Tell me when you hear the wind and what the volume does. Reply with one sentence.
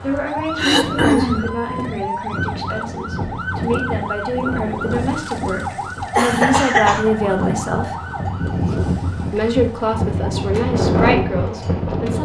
The wind can be heard from 0.0 to 12.1 s, getting louder.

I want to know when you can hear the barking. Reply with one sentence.
The barking can't be heard in this clip.